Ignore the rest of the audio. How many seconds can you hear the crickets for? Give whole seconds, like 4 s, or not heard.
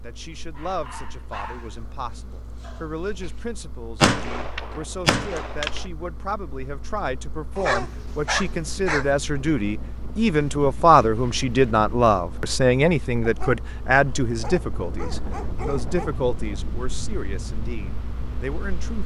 not heard.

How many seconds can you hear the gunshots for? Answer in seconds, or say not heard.
2 s.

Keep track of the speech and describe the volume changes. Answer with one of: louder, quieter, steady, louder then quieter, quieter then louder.
louder then quieter.